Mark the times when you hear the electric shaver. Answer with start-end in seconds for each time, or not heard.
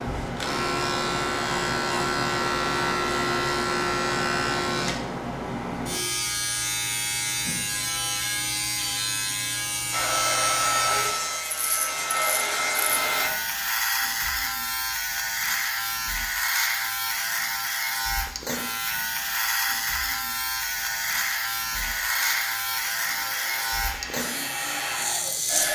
0.0-25.7.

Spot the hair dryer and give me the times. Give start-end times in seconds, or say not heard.
9.9-13.3, 20.6-25.7.